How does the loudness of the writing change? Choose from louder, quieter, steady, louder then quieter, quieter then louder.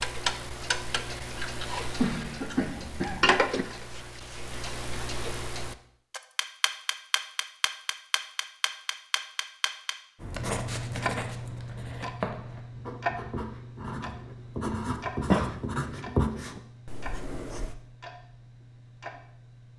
louder.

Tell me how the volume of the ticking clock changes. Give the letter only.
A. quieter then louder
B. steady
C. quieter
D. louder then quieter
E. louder
C.